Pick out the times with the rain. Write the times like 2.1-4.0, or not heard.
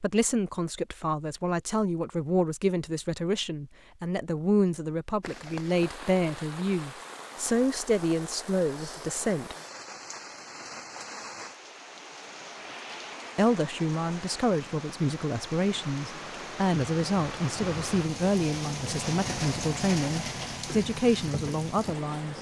5.2-22.3.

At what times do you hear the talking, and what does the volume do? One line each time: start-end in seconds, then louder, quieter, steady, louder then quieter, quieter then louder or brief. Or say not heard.
0.0-9.6 steady
13.3-22.3 steady.